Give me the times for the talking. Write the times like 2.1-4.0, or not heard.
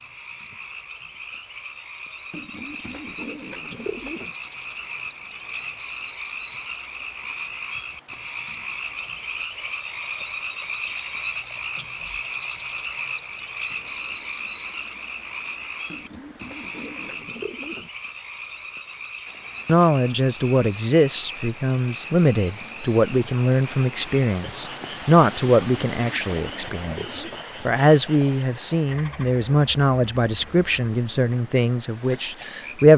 19.6-32.9.